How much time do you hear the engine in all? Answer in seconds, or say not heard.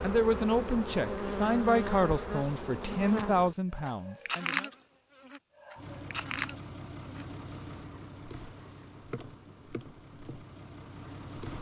6 s.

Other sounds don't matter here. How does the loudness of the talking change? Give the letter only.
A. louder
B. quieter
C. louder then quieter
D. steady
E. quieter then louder
B.